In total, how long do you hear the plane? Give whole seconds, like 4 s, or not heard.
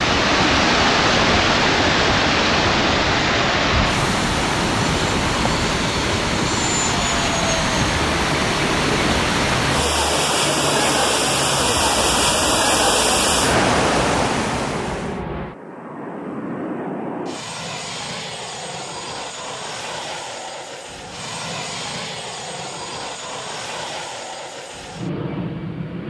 26 s.